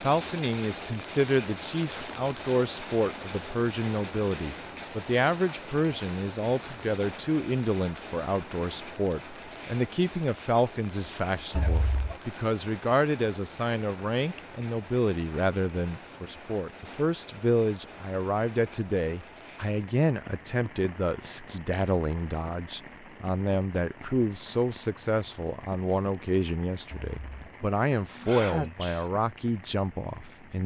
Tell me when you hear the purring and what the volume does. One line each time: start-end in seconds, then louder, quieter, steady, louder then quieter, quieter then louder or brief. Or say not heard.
not heard.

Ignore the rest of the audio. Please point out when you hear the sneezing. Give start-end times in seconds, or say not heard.
11.5-12.2, 26.9-29.1.